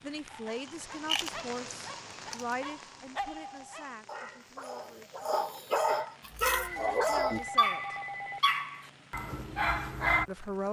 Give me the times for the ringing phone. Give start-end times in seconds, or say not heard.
6.7-8.4.